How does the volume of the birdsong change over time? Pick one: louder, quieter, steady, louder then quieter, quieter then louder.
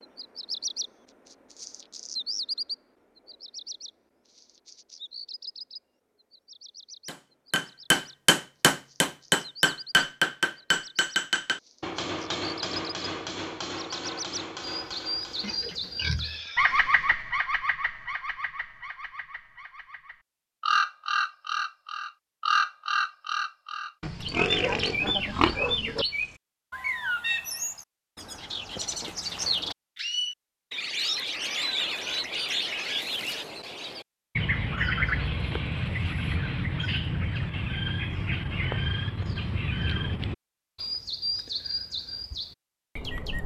louder.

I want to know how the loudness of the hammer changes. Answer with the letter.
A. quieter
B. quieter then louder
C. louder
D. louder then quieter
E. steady
A.